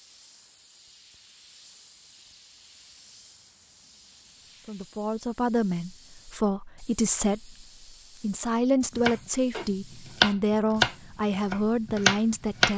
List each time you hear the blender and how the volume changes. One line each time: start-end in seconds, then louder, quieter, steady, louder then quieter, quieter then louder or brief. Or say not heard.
not heard.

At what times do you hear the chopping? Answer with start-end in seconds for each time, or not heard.
8.9-12.7.